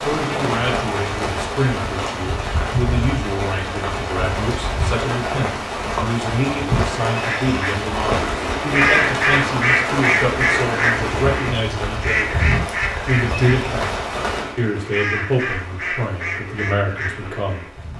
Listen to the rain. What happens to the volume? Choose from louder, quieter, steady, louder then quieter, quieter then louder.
quieter.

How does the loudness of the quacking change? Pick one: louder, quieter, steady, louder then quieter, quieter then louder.
quieter.